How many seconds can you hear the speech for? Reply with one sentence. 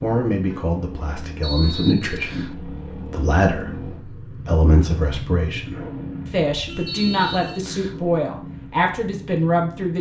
The speech can be heard for 10 seconds in total.